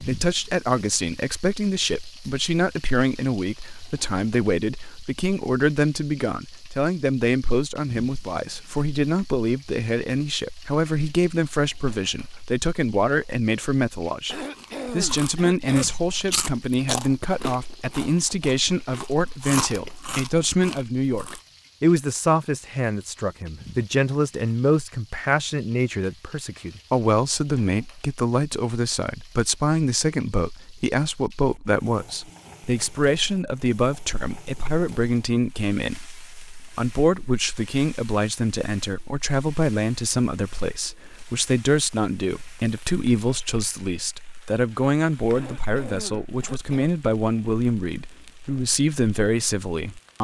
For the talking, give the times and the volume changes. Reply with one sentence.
You can hear the talking from 0.0 to 50.2 s, at a steady volume.